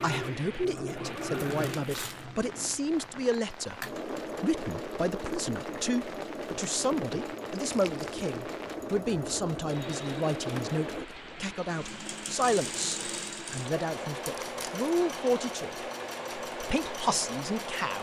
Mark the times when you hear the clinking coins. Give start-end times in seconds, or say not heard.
not heard.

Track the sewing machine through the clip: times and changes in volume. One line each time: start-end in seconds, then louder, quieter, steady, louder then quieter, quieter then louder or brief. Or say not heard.
0.0-17.9 steady.